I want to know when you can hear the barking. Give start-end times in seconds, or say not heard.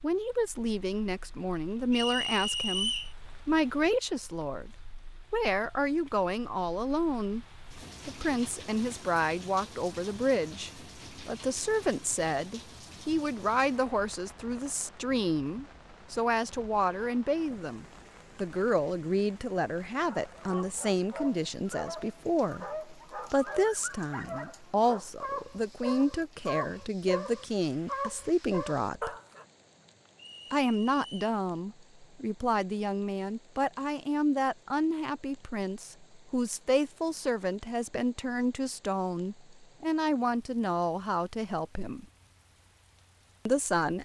19.9-29.4.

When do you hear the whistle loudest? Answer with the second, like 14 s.
3 s.